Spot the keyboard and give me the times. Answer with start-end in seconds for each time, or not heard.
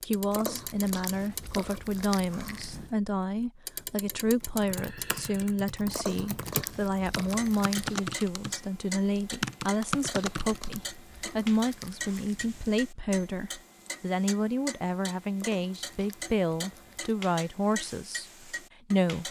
4.5-10.8.